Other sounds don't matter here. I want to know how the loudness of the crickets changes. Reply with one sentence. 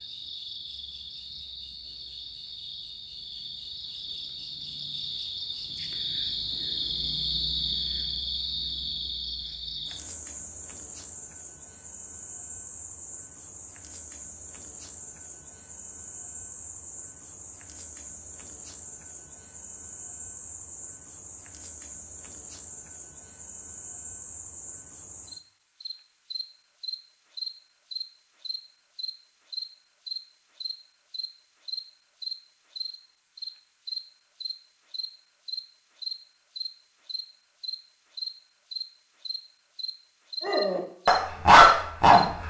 The loudness of the crickets goes down, then up.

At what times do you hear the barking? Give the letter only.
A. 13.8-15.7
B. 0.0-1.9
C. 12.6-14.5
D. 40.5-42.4
D.